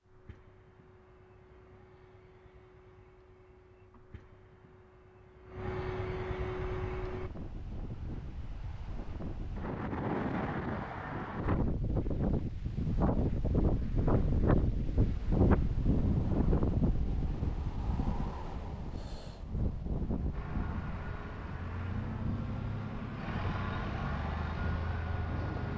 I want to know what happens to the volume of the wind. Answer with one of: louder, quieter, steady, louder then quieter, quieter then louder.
louder then quieter.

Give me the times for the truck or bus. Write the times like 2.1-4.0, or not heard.
0.0-7.3, 20.3-25.7.